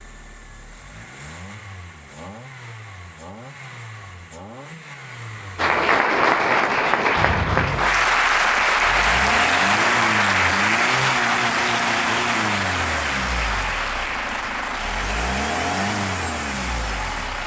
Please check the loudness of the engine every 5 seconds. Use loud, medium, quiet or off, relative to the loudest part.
quiet, loud, loud, loud.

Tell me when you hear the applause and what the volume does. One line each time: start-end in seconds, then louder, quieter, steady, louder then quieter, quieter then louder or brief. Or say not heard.
5.5-17.4 quieter.